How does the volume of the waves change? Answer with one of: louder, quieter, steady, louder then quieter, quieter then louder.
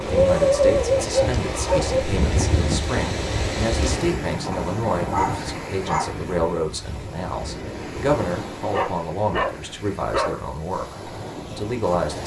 quieter.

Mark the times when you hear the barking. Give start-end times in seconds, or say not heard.
0.1-2.0, 4.5-6.2, 8.7-10.3.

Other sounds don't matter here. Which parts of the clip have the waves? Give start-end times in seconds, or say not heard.
0.0-12.2.